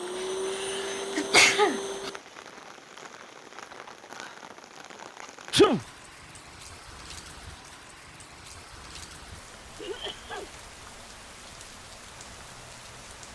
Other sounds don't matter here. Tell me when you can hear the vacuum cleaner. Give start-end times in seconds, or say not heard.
0.0-2.2.